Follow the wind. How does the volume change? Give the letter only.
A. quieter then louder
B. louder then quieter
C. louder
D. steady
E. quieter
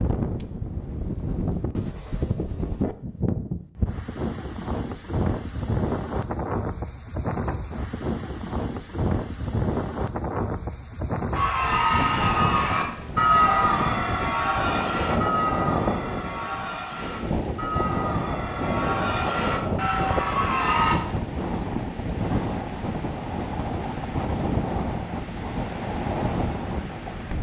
D.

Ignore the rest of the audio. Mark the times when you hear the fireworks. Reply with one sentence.
The fireworks can't be heard in this clip.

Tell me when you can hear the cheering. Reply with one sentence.
The cheering can be heard from 11.3 to 20.9 s.